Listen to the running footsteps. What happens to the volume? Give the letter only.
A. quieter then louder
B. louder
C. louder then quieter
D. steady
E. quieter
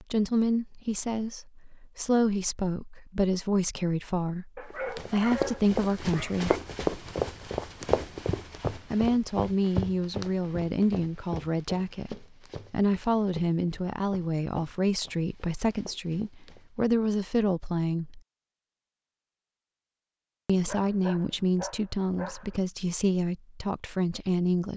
E.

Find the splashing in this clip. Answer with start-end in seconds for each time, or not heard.
not heard.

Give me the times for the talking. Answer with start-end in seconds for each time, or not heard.
0.0-6.5, 8.9-18.2, 20.4-24.7.